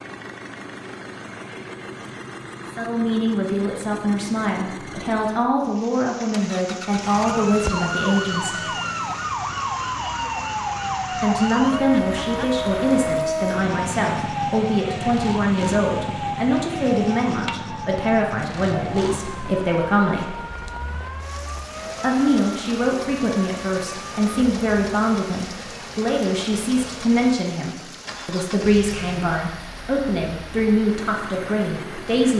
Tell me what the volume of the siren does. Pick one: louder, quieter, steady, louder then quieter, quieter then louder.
quieter.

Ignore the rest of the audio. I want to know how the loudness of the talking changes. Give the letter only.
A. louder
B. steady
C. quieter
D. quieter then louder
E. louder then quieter
B.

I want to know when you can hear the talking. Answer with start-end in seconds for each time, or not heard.
2.8-8.6, 11.1-20.4, 22.0-32.3.